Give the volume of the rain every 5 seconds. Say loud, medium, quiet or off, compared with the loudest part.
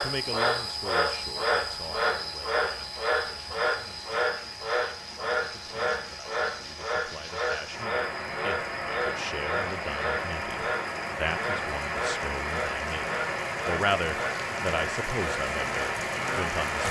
quiet, medium, loud, loud.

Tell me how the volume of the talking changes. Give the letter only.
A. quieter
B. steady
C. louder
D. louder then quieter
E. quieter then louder
E.